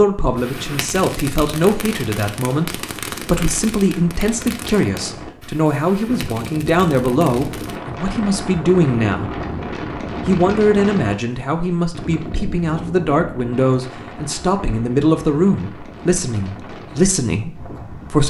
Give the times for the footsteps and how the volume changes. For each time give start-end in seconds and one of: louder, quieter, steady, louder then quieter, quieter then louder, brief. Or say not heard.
not heard.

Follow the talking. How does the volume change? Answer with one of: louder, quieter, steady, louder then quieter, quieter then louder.
steady.